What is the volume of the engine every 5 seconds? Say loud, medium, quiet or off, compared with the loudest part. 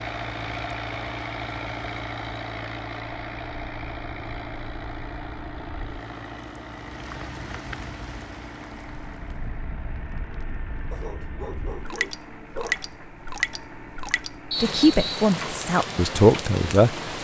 loud, medium, medium, off.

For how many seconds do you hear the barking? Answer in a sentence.
The barking can be heard for 2 seconds in total.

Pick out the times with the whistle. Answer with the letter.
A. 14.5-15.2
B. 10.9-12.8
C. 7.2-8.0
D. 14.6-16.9
A.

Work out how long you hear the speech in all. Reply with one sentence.
You can hear the speech for 2 seconds altogether.